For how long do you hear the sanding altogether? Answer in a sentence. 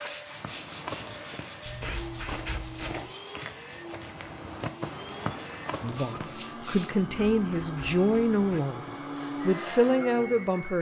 The sanding can be heard for 7 seconds in total.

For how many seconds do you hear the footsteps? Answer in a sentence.
You can hear the footsteps for 6 seconds altogether.